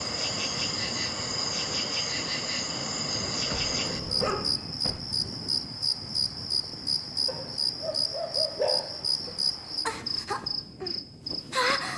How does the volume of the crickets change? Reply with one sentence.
The volume of the crickets stays about the same.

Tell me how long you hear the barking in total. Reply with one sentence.
You can hear the barking for 4 seconds altogether.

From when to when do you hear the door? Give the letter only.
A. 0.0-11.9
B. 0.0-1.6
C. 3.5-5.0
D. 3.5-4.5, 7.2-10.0
C.